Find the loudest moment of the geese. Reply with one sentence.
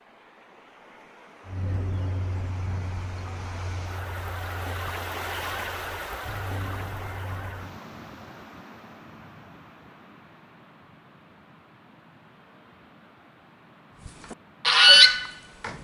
The loudest moment of the geese is at 15 seconds.